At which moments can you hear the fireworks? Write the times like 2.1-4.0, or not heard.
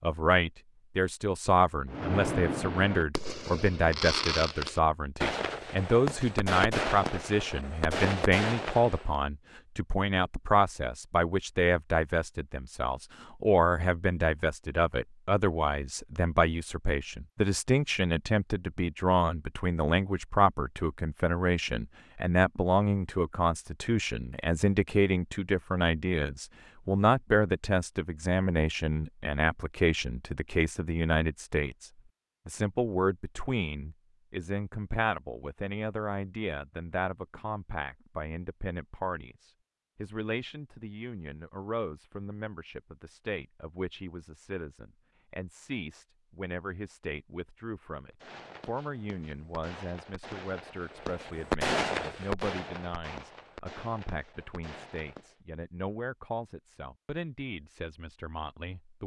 1.9-9.2, 48.1-55.4.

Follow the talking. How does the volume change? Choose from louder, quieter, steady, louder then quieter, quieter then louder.
quieter.